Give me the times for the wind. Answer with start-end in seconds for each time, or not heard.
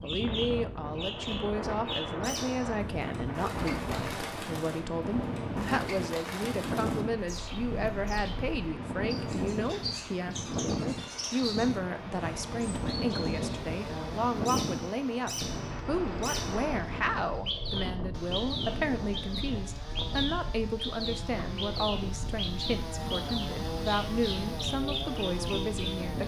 0.0-26.2.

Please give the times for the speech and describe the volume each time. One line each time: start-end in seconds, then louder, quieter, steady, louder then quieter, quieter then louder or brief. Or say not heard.
0.0-26.2 steady.